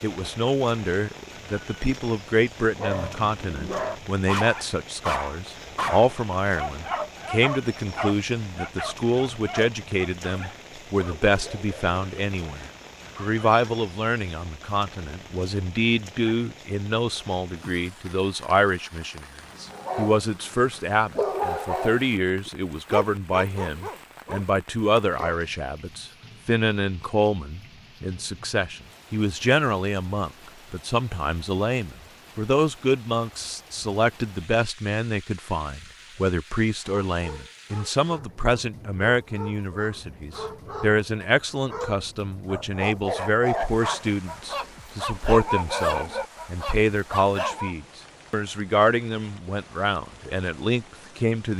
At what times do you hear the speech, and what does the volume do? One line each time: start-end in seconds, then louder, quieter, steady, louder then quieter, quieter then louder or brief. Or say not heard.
0.0-51.5 steady.